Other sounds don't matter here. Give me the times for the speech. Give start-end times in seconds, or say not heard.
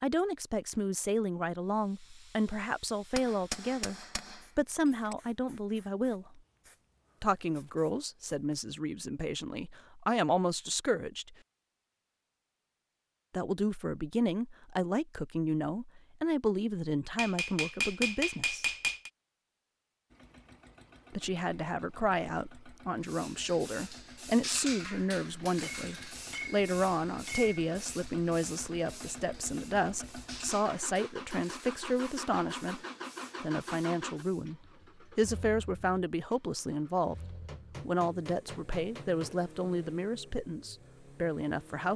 0.0-6.4, 7.2-11.3, 13.3-18.6, 21.1-32.8, 33.4-37.1, 37.9-41.9.